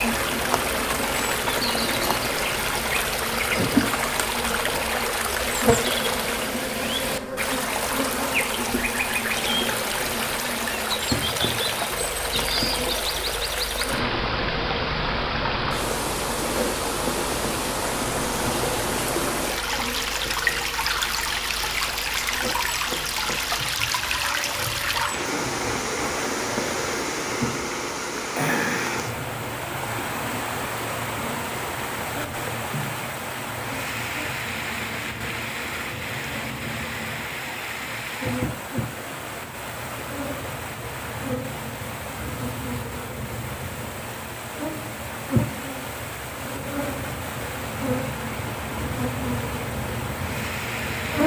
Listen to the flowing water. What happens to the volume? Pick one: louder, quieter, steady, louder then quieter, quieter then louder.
quieter.